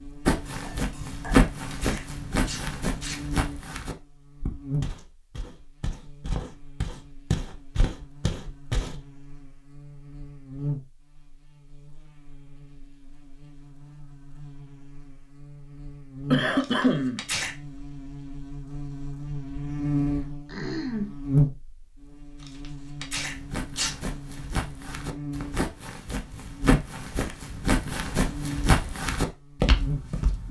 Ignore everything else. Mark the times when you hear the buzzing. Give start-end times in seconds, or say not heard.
0.0-30.4.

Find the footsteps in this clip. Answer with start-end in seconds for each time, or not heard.
0.2-9.0, 23.2-30.4.